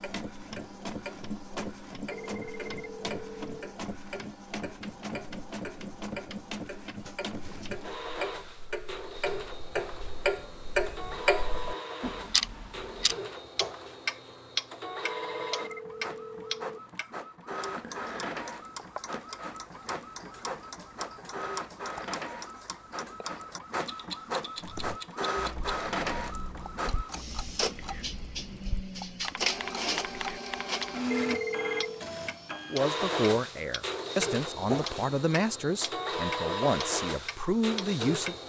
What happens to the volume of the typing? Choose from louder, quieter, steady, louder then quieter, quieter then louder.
louder.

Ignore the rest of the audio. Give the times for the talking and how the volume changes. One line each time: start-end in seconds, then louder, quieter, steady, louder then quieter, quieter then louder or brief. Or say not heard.
32.7-38.4 steady.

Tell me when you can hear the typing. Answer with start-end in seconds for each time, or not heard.
24.6-30.9.